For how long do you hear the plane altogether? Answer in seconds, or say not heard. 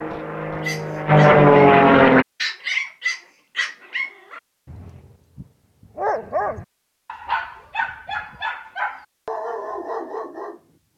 2 s.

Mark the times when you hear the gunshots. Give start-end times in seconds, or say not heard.
not heard.